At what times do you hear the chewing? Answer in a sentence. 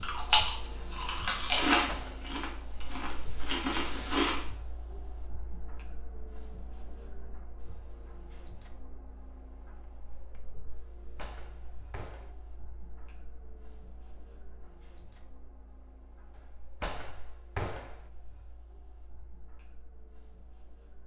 The chewing can be heard from 0.0 to 4.5 s.